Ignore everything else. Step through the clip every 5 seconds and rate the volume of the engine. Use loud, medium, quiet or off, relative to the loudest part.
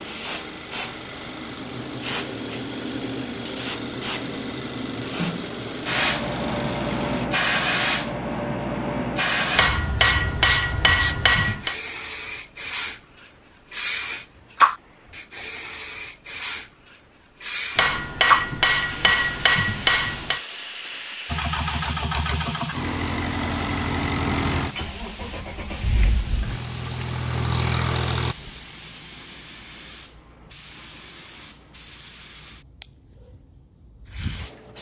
medium, medium, off, off, loud, loud, off.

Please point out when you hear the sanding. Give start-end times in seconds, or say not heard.
not heard.